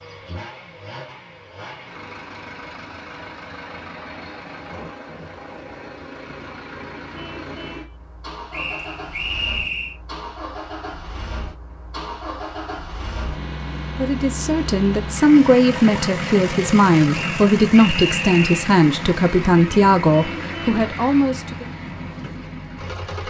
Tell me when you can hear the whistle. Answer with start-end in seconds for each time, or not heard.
8.5-9.9, 17.1-18.7.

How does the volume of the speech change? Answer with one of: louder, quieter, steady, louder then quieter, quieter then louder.
steady.